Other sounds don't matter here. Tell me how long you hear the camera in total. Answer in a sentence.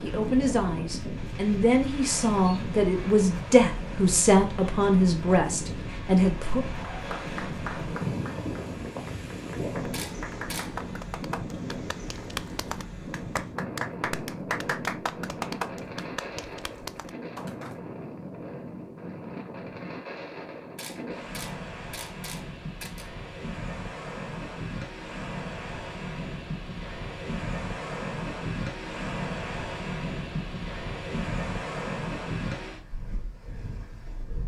The camera can be heard for 3 seconds in total.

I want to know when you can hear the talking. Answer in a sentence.
The talking can be heard from 0.0 to 6.6 s.